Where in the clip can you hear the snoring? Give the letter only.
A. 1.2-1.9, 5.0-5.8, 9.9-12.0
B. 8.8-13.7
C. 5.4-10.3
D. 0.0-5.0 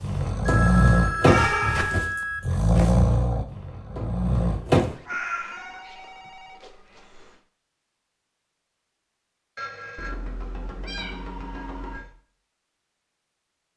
D.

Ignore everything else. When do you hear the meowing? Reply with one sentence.
The meowing can be heard from 1.2 to 1.9 s, from 5.0 to 5.8 s and from 9.9 to 12.0 s.